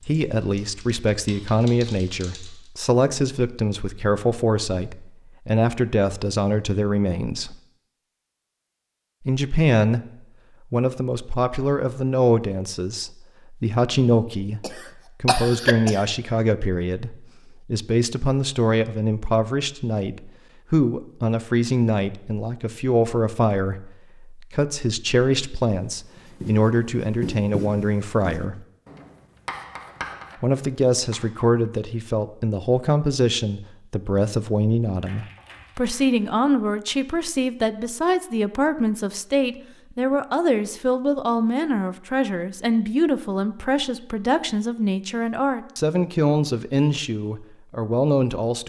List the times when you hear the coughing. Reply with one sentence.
The coughing can be heard from 14.6 to 16.0 s.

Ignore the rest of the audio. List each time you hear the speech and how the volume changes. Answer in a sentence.
The speech can be heard from 0.1 to 7.5 s, at a steady volume; briefly from 9.2 to 10.0 s; from 10.7 to 28.6 s, at a steady volume; and from 30.4 to 48.6 s, at a steady volume.